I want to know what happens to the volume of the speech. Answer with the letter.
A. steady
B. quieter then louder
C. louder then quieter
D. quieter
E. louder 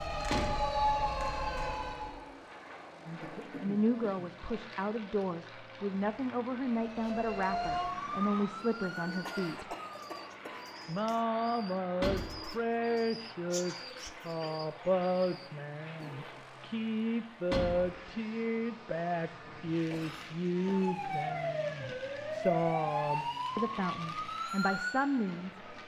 A.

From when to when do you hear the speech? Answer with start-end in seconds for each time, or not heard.
3.0-9.8, 10.8-25.6.